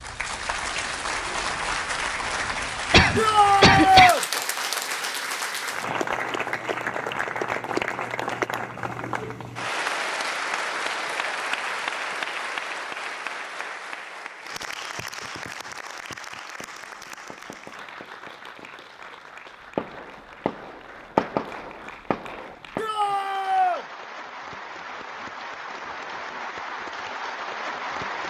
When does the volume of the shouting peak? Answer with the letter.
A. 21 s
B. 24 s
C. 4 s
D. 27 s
C.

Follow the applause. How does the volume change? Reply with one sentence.
The volume of the applause goes down, then up.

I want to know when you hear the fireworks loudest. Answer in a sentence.
The loudest moment of the fireworks is at 21 seconds.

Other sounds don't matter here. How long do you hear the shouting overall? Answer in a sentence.
The shouting can be heard for 2 seconds in total.